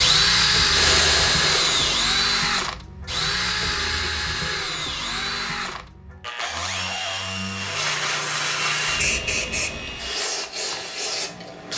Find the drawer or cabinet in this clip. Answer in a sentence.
You can hear the drawer or cabinet from 6.4 to 8.0 s.